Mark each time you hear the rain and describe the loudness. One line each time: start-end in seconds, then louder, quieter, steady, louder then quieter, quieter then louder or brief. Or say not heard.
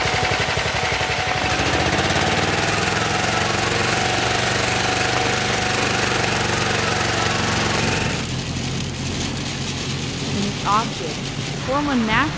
0.0-12.3 steady.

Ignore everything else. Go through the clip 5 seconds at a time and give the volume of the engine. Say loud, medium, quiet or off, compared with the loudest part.
loud, loud, off.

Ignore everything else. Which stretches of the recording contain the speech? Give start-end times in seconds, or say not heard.
10.3-12.3.